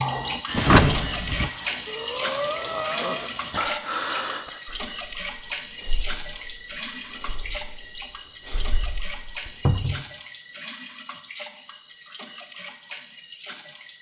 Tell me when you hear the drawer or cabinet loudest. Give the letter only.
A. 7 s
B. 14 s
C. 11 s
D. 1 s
D.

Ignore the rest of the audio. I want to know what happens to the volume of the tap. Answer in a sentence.
The volume of the tap goes down.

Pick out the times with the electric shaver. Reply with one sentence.
The electric shaver can be heard from 0.0 to 3.6 s.